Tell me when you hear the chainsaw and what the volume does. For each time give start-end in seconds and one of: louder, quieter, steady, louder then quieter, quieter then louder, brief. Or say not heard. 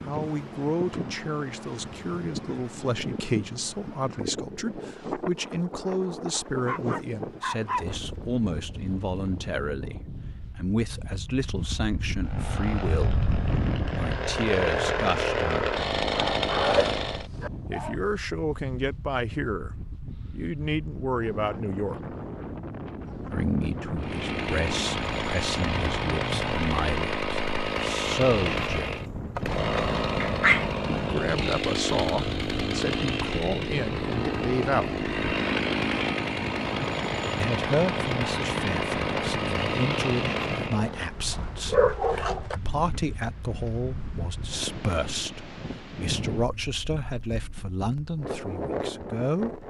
12.2-17.3 louder
23.9-41.1 steady.